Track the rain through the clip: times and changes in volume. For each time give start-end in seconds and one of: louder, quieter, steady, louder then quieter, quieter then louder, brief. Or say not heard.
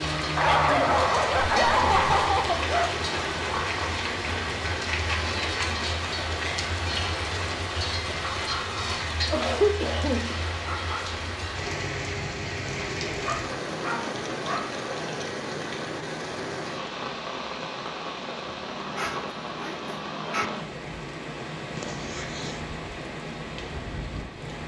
0.0-24.6 quieter.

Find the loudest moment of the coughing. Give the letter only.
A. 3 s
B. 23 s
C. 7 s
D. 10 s
D.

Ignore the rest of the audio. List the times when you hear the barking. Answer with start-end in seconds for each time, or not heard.
0.3-2.9, 12.8-14.7, 18.5-20.4.